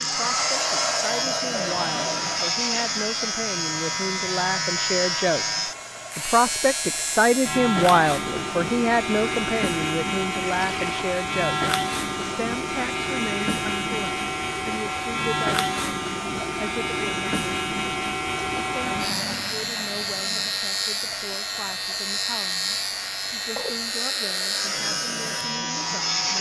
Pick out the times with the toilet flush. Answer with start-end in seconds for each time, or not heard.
1.5-2.5, 10.4-11.0, 18.8-20.6.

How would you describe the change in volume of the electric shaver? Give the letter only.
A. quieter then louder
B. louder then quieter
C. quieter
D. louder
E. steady
E.